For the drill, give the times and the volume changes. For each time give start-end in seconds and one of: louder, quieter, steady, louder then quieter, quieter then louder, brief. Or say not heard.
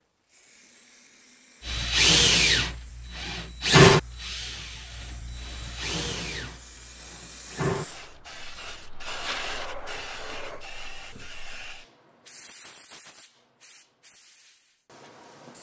1.6-10.7 quieter.